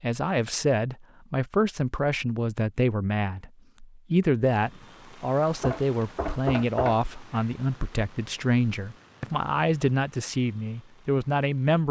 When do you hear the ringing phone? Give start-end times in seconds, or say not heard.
not heard.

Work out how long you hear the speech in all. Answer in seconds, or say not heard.
12 s.